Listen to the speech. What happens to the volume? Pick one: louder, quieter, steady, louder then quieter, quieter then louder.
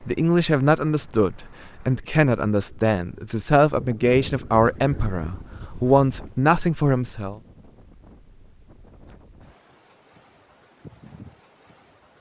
steady.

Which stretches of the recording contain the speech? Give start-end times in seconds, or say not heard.
0.0-7.4.